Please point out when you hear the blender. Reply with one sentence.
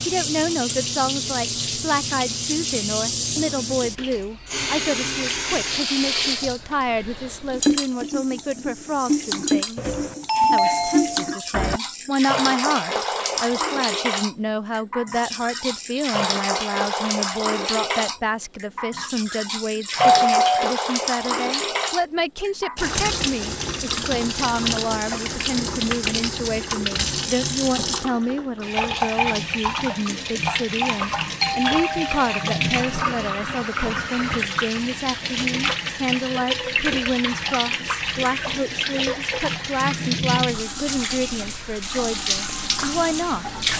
You can't hear the blender here.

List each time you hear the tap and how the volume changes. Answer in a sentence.
You can hear the tap from 0.0 to 43.7 s, at a steady volume.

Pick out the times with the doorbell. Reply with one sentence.
You can hear the doorbell from 9.8 to 11.8 s, from 19.9 to 20.8 s and from 31.4 to 33.0 s.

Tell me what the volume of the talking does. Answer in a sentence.
The volume of the talking stays about the same.